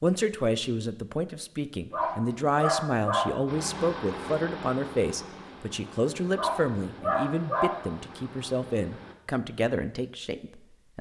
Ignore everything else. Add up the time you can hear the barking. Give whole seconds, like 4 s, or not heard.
3 s.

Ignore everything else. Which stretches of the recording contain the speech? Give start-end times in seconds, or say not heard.
0.0-10.9.